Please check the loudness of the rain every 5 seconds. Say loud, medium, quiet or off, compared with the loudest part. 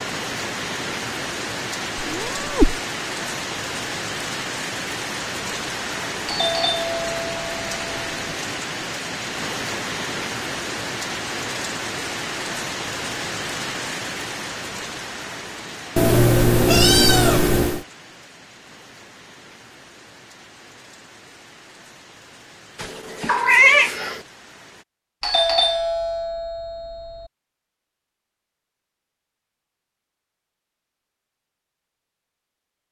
loud, loud, loud, medium, quiet, off, off.